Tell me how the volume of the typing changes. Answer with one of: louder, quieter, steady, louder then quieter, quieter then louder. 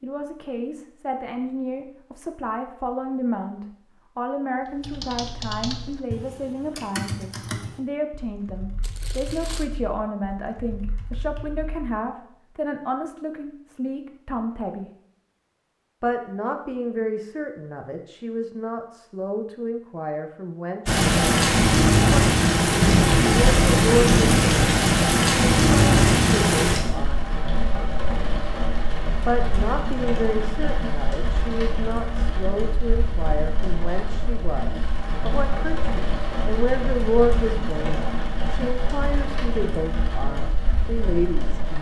quieter.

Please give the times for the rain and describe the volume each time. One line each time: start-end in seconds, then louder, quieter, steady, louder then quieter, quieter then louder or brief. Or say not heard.
20.9-41.7 quieter.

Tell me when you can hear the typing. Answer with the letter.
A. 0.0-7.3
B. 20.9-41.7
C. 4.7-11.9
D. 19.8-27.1
C.